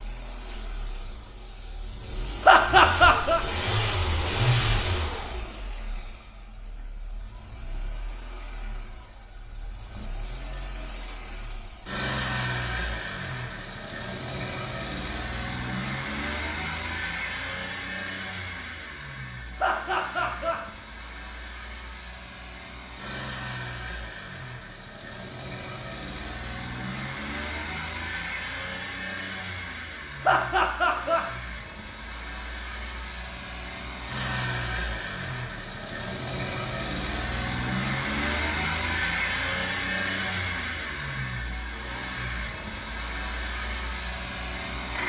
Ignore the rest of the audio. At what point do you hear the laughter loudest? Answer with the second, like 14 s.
3 s.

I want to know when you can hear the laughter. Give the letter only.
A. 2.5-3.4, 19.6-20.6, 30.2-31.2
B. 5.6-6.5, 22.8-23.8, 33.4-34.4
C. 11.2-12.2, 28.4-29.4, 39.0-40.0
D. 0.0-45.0
A.